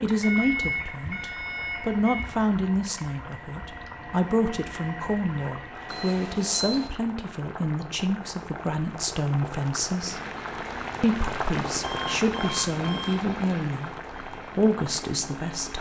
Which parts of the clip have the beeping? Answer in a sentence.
You can hear the beeping from 0.2 to 2.2 s, from 5.8 to 6.9 s and from 11.8 to 13.2 s.